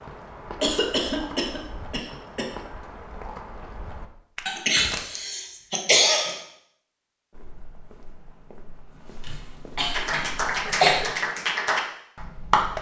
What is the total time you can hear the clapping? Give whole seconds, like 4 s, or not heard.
3 s.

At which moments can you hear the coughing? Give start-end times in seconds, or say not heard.
0.6-2.5, 4.5-6.4, 9.2-11.1.